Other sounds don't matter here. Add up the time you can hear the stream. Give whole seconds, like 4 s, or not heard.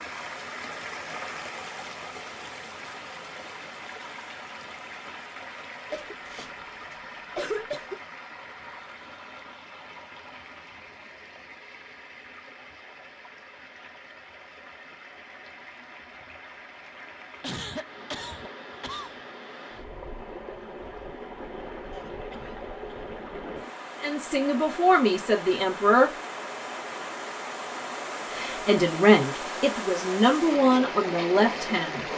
32 s.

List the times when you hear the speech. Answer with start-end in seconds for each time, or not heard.
24.0-26.1, 28.3-32.0.